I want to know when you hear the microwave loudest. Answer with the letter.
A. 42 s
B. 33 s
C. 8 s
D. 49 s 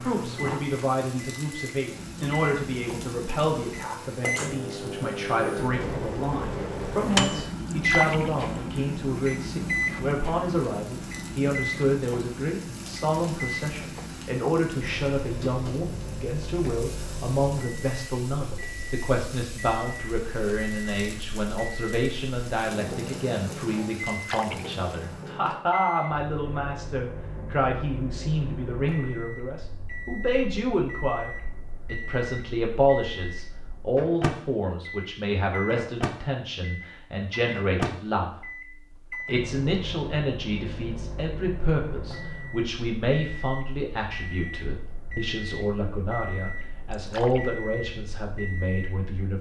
C.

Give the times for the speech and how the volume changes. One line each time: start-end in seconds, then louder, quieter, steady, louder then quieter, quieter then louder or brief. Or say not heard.
0.0-49.3 steady.